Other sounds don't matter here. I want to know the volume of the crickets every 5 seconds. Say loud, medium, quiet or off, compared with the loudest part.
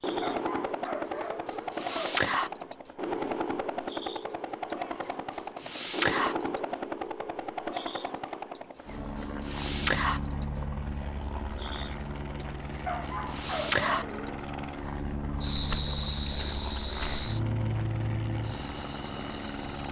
loud, loud, loud, medium.